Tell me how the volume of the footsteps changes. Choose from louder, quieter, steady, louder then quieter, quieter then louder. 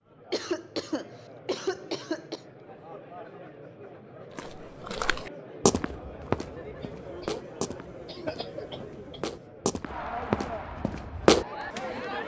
quieter then louder.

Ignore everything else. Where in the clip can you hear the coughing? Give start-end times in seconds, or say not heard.
0.3-2.4, 6.8-9.2.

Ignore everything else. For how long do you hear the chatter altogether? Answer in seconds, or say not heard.
12 s.